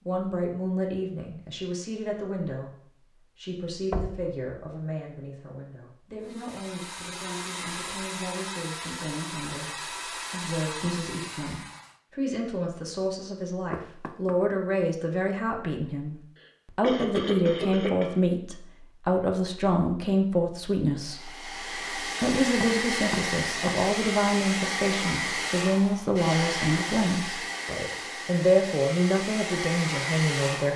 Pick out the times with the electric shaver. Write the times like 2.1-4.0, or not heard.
not heard.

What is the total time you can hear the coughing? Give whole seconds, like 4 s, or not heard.
2 s.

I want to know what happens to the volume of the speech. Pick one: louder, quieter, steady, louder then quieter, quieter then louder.
louder.